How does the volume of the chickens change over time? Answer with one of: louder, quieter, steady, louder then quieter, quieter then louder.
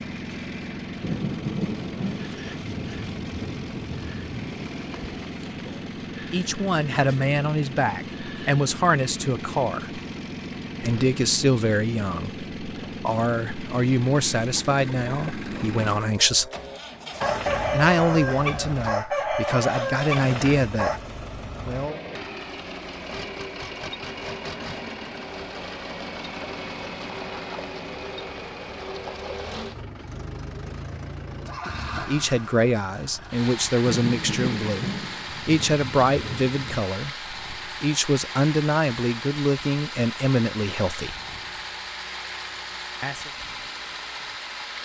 louder.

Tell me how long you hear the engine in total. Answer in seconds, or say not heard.
45 s.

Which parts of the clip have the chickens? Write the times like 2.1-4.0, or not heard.
14.4-21.0.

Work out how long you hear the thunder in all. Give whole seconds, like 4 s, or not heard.
7 s.